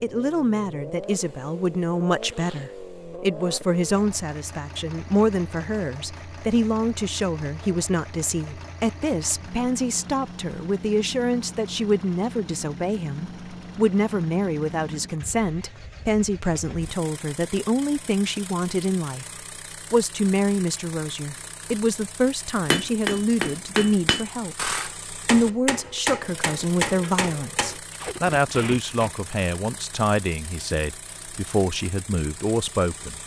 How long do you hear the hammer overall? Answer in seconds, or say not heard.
5 s.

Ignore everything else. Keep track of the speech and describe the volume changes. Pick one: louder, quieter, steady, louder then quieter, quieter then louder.
steady.